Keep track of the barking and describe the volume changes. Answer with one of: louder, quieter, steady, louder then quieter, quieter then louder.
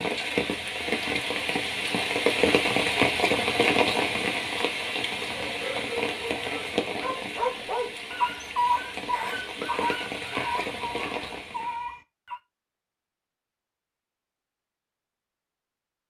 louder then quieter.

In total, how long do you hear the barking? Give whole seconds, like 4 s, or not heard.
7 s.